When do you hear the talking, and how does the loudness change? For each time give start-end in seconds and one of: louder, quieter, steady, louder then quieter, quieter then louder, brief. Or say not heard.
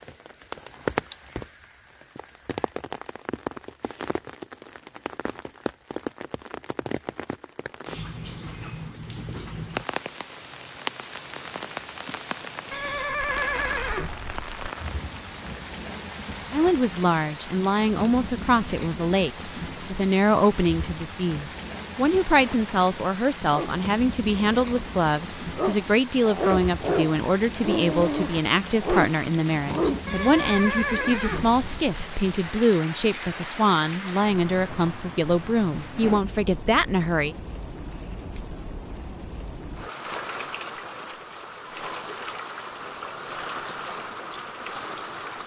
16.5-37.4 steady.